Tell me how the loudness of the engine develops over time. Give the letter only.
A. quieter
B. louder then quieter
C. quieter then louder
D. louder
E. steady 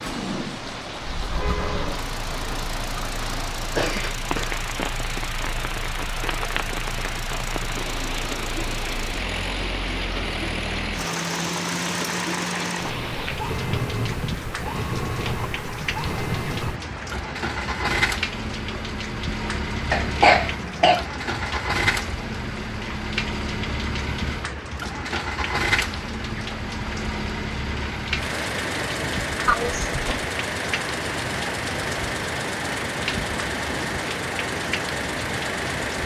D.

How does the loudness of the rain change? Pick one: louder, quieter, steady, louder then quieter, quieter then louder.
steady.